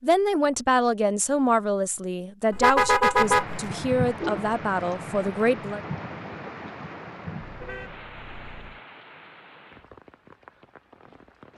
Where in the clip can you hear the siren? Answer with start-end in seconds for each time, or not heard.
not heard.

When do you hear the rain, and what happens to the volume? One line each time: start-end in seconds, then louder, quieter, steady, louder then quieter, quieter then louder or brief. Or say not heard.
3.1-11.5 quieter.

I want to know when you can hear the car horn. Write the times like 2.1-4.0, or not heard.
2.5-3.7, 7.4-8.8.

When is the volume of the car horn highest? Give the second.
3 s.